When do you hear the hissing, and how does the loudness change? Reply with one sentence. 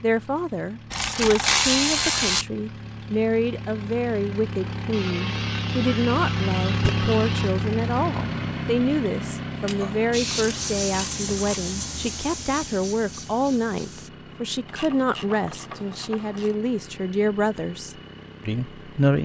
The hissing can be heard from 10.1 to 14.1 s, getting quieter.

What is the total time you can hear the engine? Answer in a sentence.
The engine can be heard for 19 seconds in total.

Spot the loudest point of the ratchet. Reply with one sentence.
The loudest moment of the ratchet is at 2 seconds.